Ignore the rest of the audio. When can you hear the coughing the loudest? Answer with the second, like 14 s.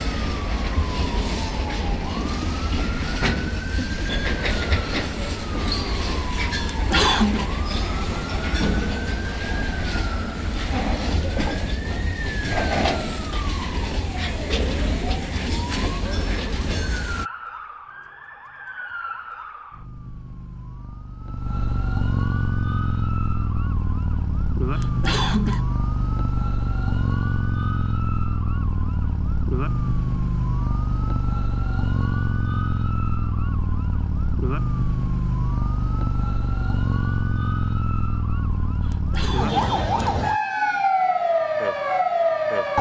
7 s.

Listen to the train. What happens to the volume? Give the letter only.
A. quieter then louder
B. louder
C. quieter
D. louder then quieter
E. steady
E.